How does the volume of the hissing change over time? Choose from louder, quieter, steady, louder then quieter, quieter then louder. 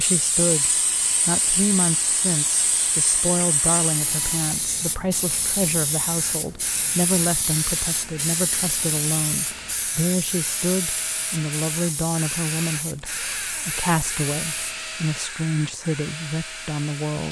quieter.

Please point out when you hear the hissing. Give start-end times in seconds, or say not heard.
0.0-14.8.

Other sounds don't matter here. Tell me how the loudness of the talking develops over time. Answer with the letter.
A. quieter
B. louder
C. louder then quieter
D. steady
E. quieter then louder
D.